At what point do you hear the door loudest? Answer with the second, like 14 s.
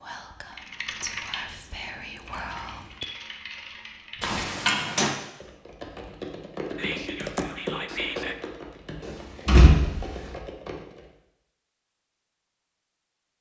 10 s.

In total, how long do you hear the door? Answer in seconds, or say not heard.
2 s.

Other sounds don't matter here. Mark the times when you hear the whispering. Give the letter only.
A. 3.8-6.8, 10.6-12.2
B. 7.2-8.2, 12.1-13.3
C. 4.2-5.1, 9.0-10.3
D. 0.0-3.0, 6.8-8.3
D.